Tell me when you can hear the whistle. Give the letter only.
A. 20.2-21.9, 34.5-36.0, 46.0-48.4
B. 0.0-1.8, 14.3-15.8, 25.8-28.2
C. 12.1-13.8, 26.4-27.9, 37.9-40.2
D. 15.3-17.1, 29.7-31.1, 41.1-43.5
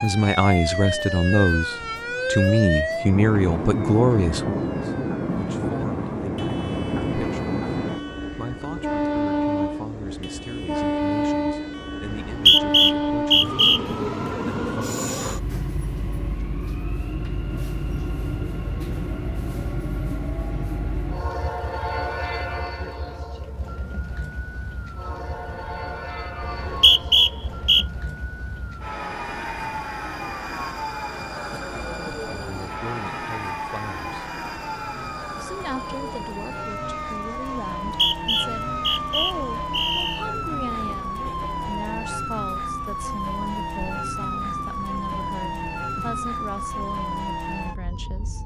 C.